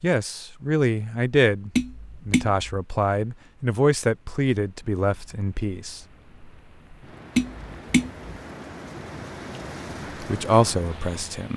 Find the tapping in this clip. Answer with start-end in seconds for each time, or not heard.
1.8-2.8, 7.3-8.1.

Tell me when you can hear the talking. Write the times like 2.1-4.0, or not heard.
0.0-6.0, 10.2-11.5.